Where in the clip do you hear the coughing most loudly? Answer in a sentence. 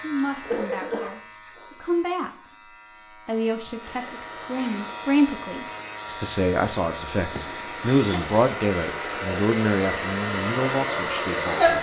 The volume of the coughing peaks at 1 second.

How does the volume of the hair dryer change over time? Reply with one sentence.
The loudness of the hair dryer goes up.